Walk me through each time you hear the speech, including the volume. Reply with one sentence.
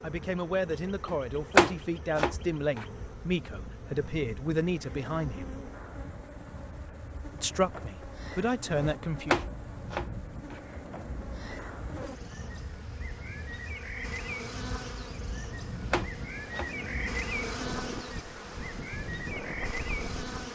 The speech can be heard from 0.0 to 5.6 s, at a steady volume; and briefly from 7.3 to 9.4 s.